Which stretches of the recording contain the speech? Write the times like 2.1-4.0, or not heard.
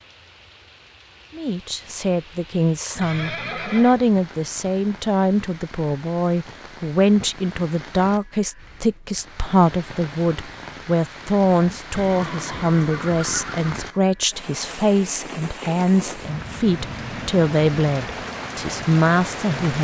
1.4-19.7.